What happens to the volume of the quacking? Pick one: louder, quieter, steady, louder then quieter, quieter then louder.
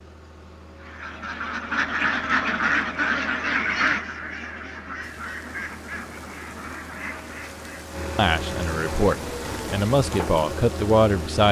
quieter.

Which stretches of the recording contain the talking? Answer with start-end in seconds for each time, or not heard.
8.2-11.4.